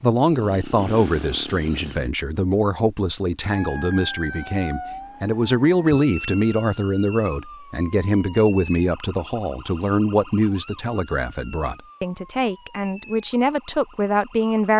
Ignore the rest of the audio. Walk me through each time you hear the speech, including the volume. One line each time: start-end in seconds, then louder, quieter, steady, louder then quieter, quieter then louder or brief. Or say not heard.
0.0-14.7 steady.